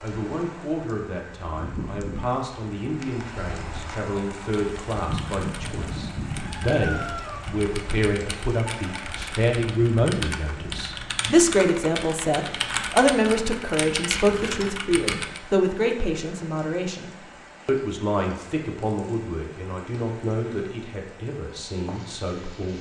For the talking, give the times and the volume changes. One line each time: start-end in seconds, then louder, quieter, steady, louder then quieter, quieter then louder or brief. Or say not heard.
0.0-22.7 louder then quieter.